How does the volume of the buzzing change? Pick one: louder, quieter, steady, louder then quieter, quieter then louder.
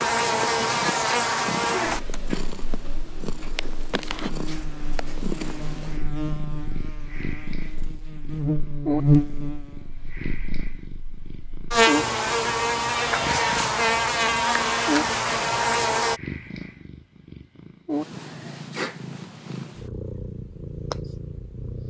quieter then louder.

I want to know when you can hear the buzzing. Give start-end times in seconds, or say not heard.
0.0-16.2.